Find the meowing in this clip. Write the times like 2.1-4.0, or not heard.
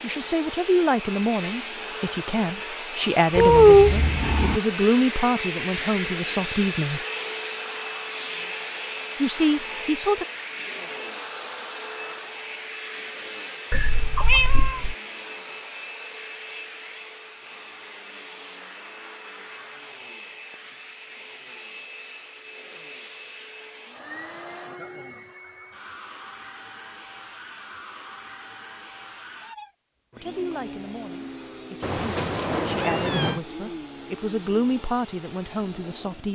3.4-4.6, 13.7-14.9, 31.8-33.4.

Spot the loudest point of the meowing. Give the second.
4 s.